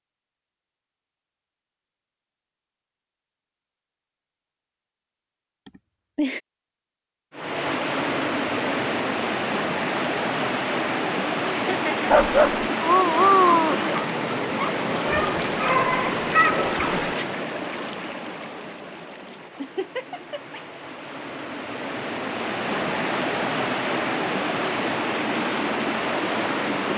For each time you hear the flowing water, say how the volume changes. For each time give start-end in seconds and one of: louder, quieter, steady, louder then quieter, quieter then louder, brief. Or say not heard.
7.3-26.9 quieter then louder.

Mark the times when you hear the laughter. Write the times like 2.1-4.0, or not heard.
5.7-6.4, 11.6-12.1, 19.6-20.6.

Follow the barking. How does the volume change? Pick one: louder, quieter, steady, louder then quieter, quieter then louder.
quieter then louder.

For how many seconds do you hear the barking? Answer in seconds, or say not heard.
5 s.